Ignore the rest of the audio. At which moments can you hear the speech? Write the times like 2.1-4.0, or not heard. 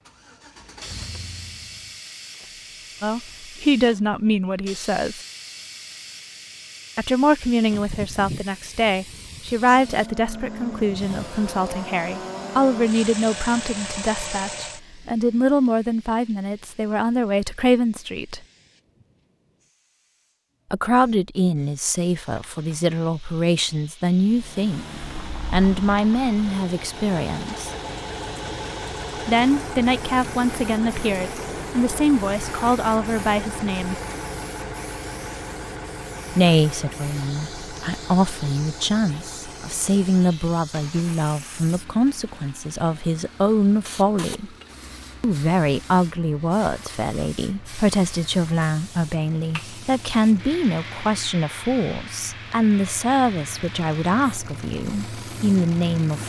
3.0-5.2, 7.0-18.4, 20.7-27.7, 29.2-34.0, 36.3-44.5, 45.2-56.2.